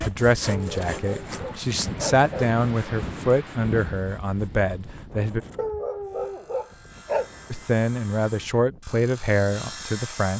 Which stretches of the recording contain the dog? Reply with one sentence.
You can hear the dog from 0.5 to 2.5 s and from 5.5 to 7.3 s.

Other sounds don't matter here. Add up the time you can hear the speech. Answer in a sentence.
The speech can be heard for 8 seconds in total.